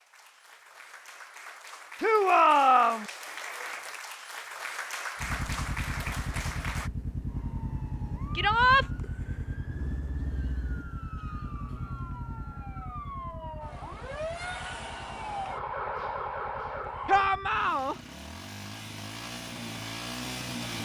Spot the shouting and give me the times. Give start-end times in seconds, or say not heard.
2.0-3.0, 8.3-8.8, 17.1-17.9.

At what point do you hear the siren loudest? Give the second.
16 s.